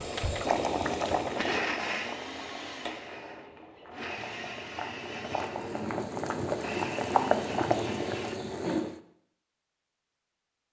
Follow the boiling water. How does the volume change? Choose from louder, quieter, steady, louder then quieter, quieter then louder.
quieter then louder.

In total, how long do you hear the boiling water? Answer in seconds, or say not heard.
9 s.